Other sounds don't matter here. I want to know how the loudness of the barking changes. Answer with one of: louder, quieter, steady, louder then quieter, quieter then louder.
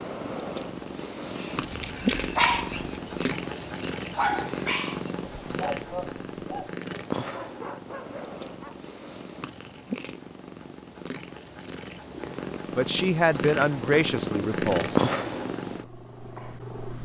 quieter.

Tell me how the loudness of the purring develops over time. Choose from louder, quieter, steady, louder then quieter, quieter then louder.
quieter then louder.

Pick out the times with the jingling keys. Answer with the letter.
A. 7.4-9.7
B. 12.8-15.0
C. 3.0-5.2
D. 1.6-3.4
D.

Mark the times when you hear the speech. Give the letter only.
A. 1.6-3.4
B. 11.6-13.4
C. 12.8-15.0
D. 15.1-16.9
C.